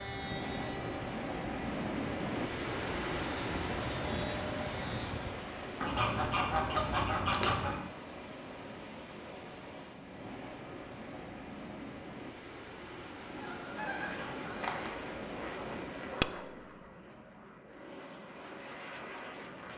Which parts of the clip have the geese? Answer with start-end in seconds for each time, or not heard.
5.8-7.8, 13.2-14.9.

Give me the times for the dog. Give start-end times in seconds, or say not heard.
not heard.